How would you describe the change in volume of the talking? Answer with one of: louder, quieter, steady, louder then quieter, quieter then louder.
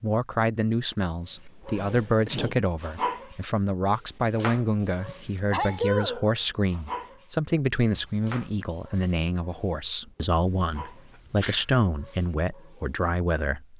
steady.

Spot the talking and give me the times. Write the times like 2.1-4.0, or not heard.
0.0-13.7.